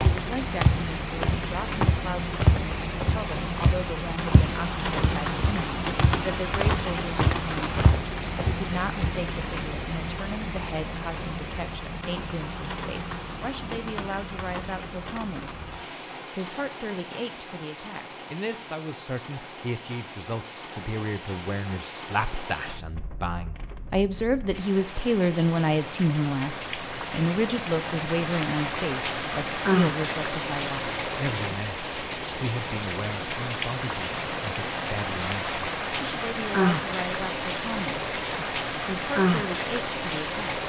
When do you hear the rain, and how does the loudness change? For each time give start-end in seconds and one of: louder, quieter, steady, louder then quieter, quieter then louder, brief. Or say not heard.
0.0-40.6 quieter then louder.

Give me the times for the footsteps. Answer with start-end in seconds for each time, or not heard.
0.0-9.1.